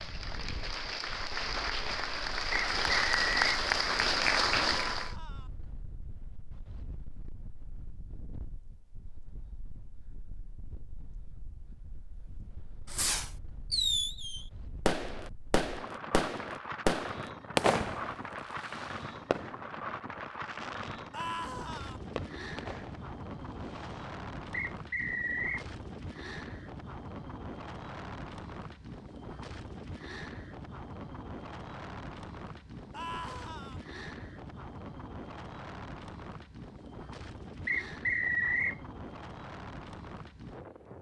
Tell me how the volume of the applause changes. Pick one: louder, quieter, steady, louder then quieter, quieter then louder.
louder.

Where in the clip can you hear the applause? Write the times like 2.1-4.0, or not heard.
0.0-5.2.